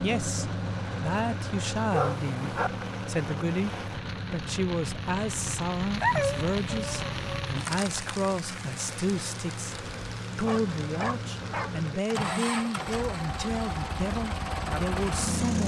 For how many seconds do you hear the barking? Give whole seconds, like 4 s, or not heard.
4 s.